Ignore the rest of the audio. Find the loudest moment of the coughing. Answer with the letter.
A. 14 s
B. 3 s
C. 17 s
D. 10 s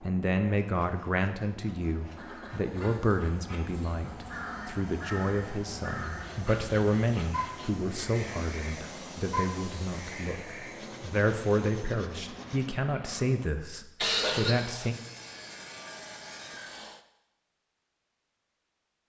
A.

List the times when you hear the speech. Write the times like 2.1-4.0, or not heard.
0.0-14.9.